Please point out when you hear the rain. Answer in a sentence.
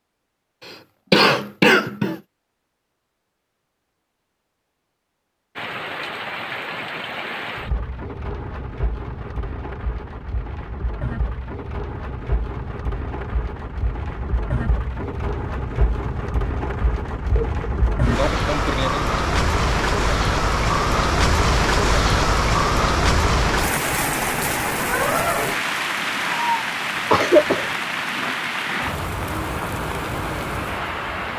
The rain can be heard from 5.5 to 31.3 s.